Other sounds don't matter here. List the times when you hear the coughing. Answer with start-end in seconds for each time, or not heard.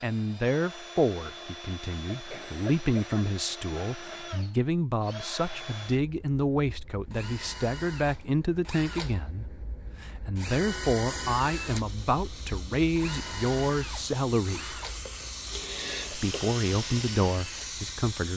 2.1-3.2, 15.5-16.4.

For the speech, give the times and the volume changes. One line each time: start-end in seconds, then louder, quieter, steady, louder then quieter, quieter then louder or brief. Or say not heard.
0.0-14.8 steady
16.1-18.3 brief.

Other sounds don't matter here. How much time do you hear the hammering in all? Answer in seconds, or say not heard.
not heard.